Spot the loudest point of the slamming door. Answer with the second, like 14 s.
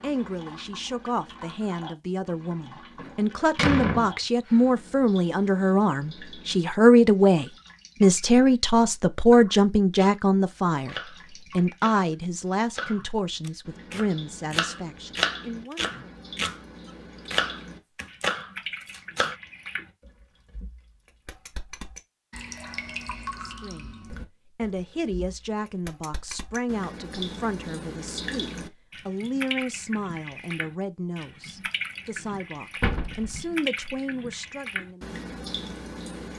4 s.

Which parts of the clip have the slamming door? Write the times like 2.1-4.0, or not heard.
3.0-4.6, 32.8-33.5.